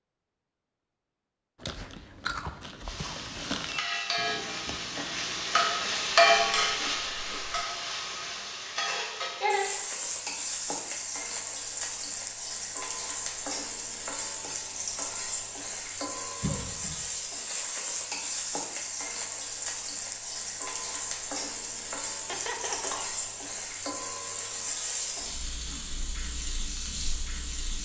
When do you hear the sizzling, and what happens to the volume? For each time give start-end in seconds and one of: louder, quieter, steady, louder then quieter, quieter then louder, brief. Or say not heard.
2.8-27.8 quieter.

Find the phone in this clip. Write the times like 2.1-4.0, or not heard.
not heard.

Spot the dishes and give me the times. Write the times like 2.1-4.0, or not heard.
not heard.